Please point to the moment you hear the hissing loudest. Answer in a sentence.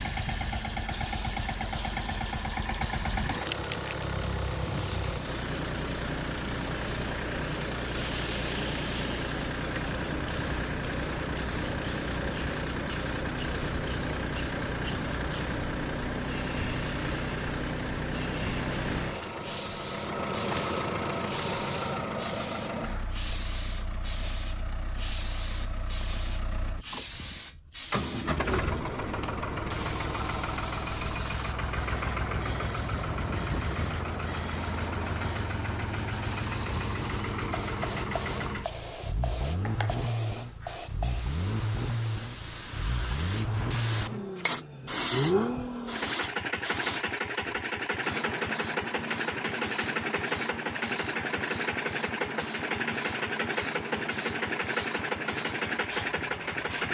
The loudest moment of the hissing is at 45 seconds.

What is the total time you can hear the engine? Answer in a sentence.
You can hear the engine for 57 seconds altogether.